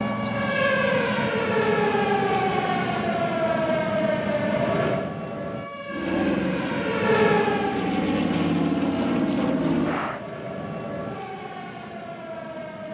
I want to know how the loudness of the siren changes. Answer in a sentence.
The volume of the siren goes down.